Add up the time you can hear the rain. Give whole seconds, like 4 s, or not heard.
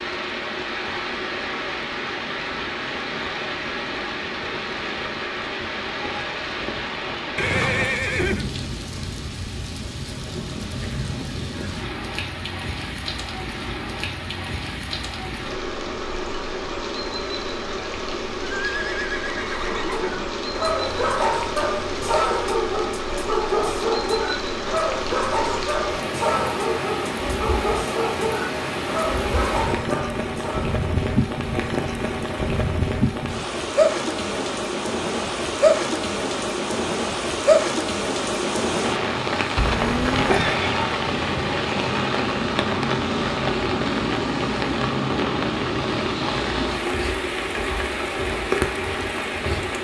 50 s.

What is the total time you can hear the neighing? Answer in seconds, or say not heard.
4 s.